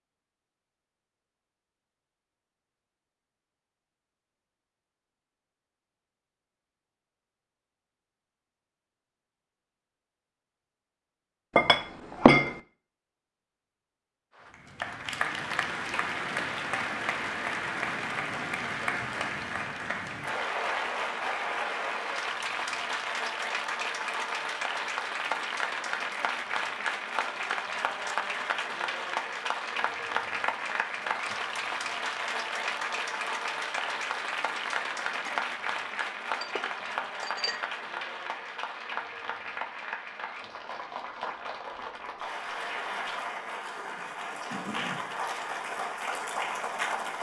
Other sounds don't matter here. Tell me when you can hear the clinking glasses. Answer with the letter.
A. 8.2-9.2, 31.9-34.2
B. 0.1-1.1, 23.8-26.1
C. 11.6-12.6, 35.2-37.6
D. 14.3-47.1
C.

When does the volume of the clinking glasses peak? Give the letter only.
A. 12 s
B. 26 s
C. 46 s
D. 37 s
A.